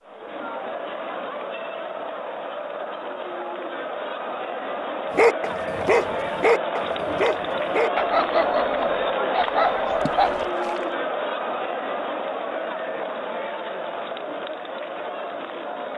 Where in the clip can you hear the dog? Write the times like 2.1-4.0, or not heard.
5.2-10.5.